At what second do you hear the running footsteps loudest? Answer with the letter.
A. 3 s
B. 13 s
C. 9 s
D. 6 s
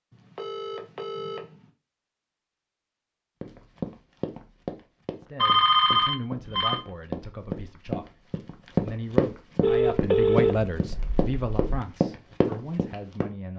C.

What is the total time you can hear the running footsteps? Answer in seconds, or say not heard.
10 s.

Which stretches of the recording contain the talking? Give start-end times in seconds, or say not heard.
5.2-13.5.